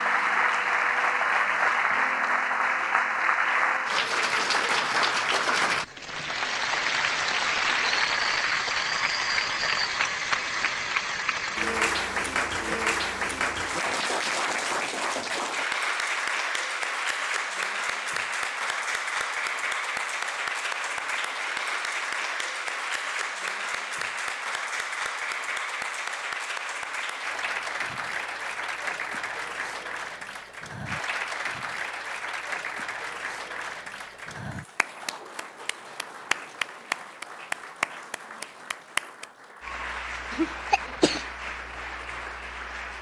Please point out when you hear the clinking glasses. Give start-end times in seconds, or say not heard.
not heard.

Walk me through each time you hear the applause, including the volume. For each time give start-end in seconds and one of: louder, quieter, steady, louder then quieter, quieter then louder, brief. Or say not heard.
0.0-42.9 quieter.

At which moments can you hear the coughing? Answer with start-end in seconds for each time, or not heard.
40.3-41.2.